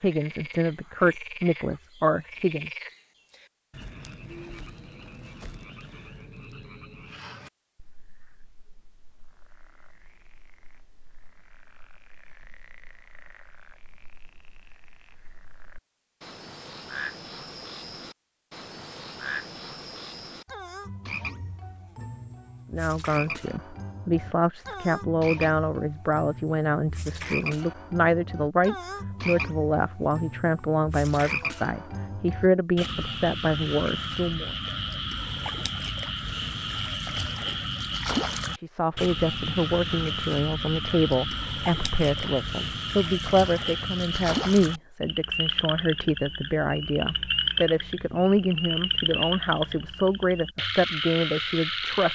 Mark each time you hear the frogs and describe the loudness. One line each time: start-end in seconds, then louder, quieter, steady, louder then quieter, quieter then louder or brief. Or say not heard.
0.0-52.1 louder.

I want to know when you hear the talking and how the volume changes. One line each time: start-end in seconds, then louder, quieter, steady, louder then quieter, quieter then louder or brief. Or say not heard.
0.0-2.7 brief
22.7-34.5 steady
38.5-52.1 steady.